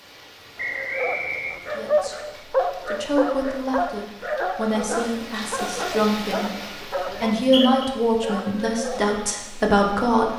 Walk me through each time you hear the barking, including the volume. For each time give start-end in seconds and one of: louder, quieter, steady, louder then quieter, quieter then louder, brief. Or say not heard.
0.8-9.2 quieter.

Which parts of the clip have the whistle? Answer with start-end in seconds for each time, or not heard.
0.6-1.6, 7.3-7.9.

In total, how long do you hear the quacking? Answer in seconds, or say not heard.
not heard.